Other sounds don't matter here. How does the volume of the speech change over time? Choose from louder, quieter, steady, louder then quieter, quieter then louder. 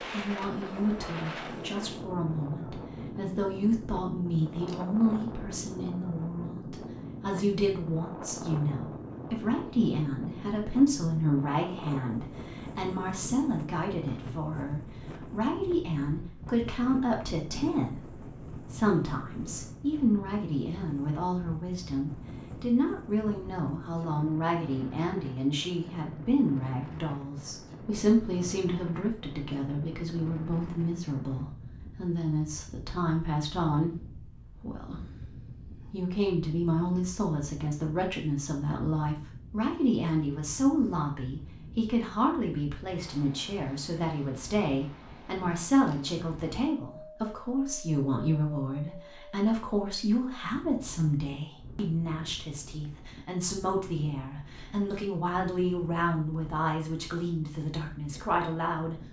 steady.